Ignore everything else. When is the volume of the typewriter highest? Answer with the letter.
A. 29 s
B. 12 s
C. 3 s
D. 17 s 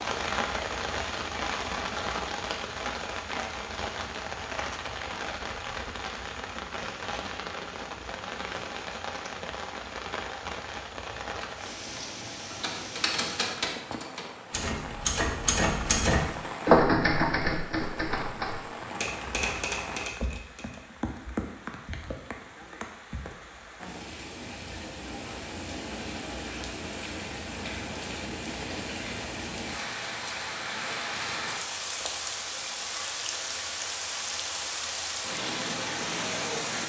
D.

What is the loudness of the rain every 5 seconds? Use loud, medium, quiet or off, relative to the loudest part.
loud, medium, medium, medium, medium, medium, loud, loud.